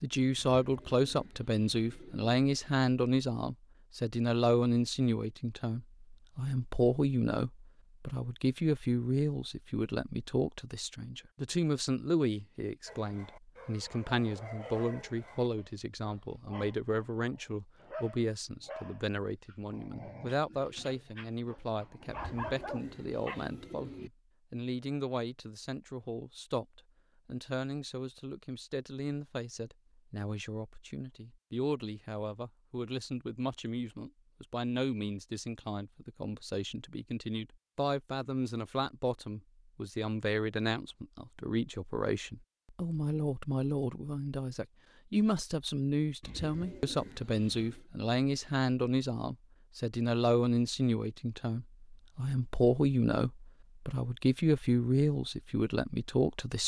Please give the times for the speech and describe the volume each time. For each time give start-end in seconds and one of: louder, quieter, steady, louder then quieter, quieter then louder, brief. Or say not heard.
0.0-56.6 quieter then louder.